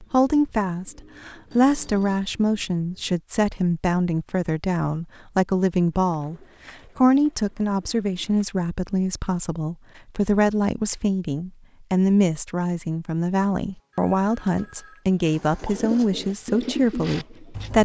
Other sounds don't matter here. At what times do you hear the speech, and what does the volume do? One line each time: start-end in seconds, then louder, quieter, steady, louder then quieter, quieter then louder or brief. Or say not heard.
0.0-17.8 steady.